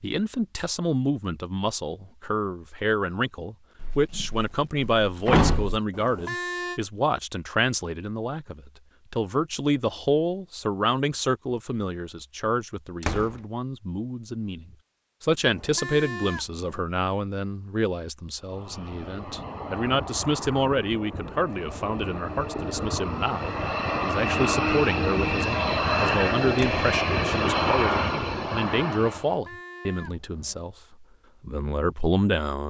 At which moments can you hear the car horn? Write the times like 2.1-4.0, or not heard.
5.9-6.8, 15.4-16.6, 29.2-30.6.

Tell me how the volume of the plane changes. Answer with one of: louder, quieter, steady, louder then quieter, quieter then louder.
louder.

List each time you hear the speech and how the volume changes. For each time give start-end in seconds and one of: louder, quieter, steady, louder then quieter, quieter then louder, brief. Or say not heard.
0.0-32.6 steady.